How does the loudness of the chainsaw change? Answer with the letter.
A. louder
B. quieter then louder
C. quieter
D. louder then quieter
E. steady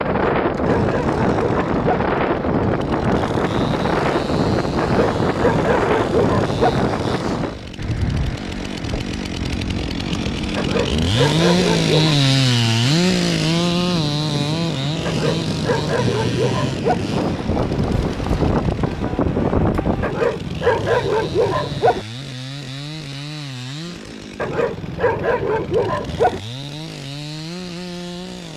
D.